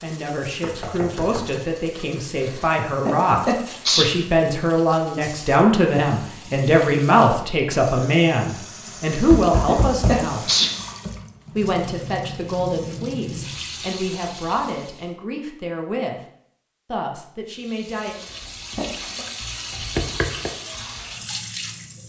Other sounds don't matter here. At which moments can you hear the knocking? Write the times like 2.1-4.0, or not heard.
0.6-1.6, 9.3-10.2, 19.8-20.5.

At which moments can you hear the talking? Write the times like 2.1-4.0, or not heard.
0.0-10.4, 11.6-16.2, 16.9-18.1.